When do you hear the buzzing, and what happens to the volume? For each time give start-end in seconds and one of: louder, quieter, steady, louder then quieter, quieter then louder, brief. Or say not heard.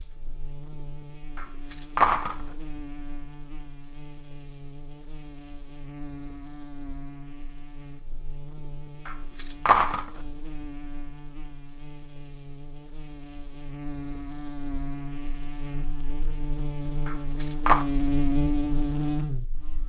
0.0-19.8 louder.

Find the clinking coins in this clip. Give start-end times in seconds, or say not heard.
1.4-2.4, 9.1-10.1, 17.1-17.9.